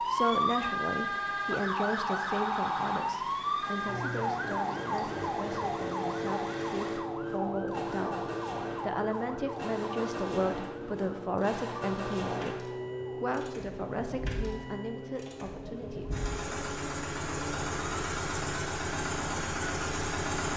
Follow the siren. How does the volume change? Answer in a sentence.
The volume of the siren goes down.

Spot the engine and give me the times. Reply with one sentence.
The engine can be heard from 0.0 to 20.5 s.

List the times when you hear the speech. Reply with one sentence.
The speech can be heard from 0.0 to 16.2 s.